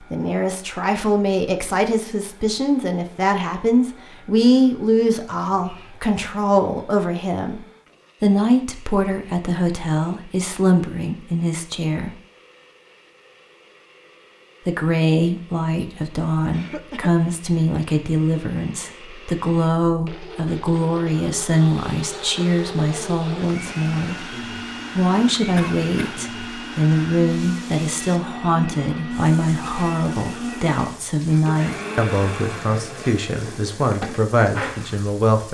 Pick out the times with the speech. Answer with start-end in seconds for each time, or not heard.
0.1-7.6, 8.2-12.1, 14.7-24.2, 24.9-35.4.